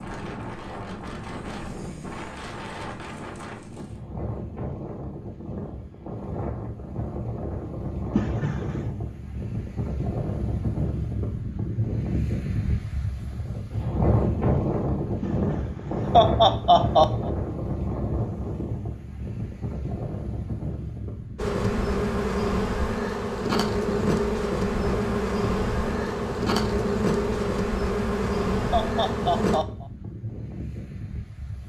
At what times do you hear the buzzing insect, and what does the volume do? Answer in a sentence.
You can hear the buzzing insect from 21.4 to 29.6 s, at a steady volume.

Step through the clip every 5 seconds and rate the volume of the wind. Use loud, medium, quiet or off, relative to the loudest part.
medium, medium, loud, loud, medium, medium, medium.